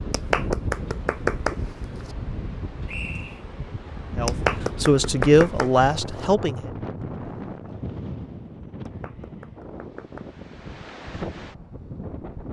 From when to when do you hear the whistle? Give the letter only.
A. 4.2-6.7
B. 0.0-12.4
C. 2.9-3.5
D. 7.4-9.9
C.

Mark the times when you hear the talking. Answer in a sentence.
The talking can be heard from 4.2 to 6.7 s.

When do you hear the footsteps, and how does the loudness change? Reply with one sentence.
The footsteps can't be heard in this clip.